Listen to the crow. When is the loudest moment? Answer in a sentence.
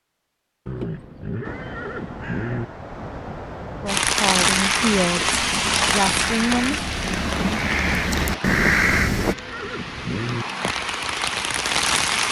The loudest moment of the crow is at 9 seconds.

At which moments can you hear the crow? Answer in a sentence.
The crow can be heard from 1.4 to 9.3 s.